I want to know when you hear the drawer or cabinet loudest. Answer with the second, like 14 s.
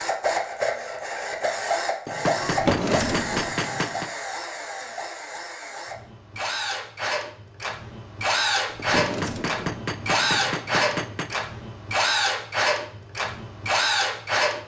3 s.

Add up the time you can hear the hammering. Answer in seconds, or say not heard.
5 s.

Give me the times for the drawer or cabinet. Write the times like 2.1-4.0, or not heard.
2.4-3.5, 8.7-9.8.